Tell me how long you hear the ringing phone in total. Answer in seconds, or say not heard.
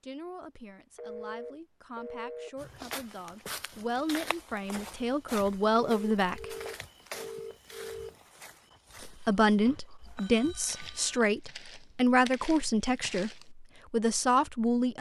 5 s.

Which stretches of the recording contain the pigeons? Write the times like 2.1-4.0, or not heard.
not heard.